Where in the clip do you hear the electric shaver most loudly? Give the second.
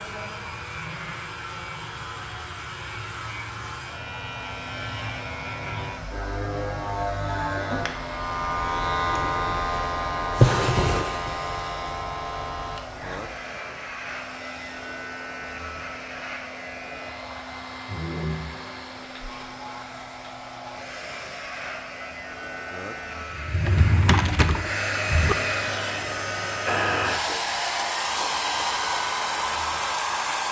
9 s.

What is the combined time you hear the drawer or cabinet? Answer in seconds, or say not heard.
3 s.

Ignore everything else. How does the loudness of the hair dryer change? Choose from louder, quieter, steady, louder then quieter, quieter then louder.
louder.